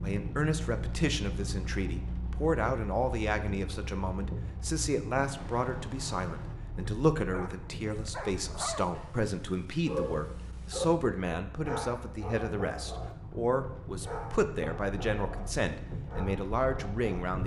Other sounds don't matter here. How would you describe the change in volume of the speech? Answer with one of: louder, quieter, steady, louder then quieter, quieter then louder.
steady.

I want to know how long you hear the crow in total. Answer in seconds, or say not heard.
not heard.